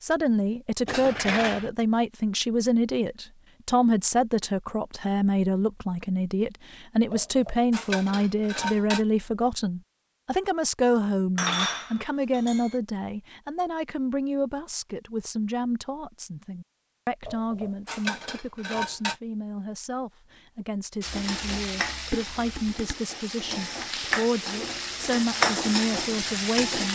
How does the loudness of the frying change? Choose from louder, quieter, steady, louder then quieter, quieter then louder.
quieter then louder.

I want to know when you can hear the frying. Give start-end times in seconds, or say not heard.
21.0-26.9.